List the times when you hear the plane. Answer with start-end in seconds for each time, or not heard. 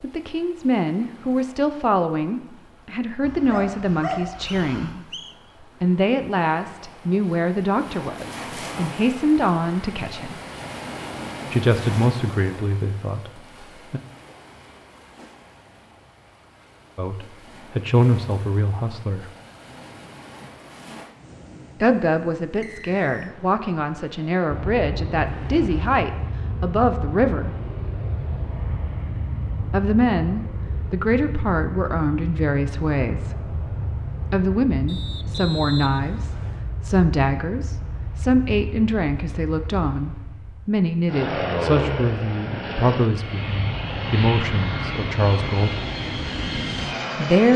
24.4-47.5.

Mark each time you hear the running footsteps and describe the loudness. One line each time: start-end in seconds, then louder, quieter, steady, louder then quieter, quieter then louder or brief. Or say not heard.
not heard.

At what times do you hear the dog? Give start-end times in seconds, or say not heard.
3.2-5.0.